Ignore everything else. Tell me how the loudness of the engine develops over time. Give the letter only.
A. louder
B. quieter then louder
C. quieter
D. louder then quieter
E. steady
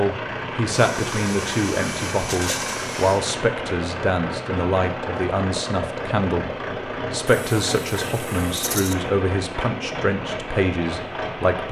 E.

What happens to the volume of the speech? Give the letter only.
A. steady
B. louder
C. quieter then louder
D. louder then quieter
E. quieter
A.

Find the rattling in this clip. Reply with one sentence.
You can hear the rattling from 2.2 to 2.9 s and from 8.5 to 8.9 s.